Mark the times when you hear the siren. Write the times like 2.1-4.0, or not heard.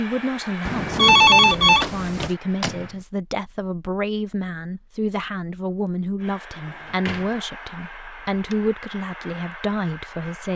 not heard.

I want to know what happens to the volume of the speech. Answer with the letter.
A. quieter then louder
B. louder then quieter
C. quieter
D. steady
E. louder
D.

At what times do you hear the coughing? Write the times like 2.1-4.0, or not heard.
not heard.